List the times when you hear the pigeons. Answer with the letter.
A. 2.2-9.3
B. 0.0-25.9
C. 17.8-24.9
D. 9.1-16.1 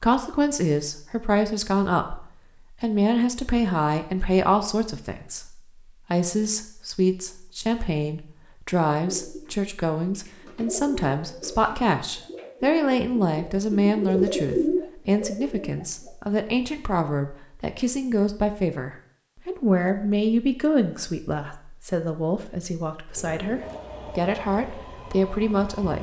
D.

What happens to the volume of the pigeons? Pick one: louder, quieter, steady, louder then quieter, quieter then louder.
louder.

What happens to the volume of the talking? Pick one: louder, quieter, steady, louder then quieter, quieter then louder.
steady.